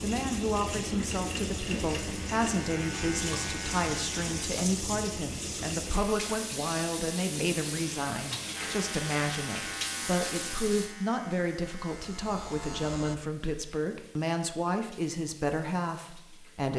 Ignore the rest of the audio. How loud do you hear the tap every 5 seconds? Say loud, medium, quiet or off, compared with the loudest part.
loud, loud, medium, quiet.